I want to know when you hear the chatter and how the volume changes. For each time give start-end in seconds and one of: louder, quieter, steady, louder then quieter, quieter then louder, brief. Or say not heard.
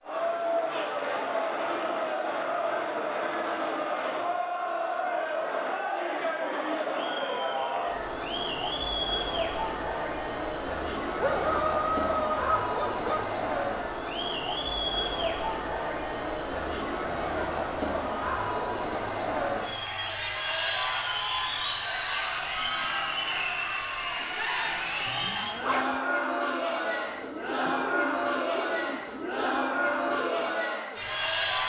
0.0-31.6 steady.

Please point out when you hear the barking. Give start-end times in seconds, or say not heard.
11.2-13.4, 25.1-26.0.